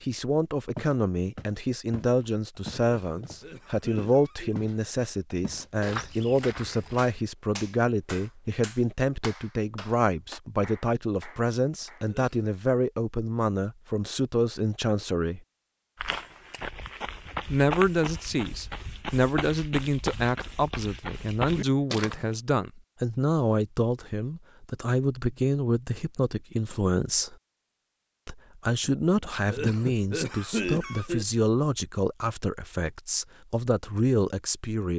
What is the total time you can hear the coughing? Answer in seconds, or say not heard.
4 s.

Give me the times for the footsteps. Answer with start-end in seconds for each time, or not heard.
0.8-4.8, 5.4-7.1, 15.9-22.4.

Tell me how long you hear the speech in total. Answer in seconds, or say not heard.
32 s.